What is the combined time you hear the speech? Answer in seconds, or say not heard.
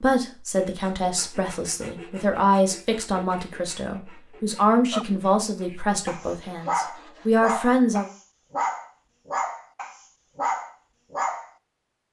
8 s.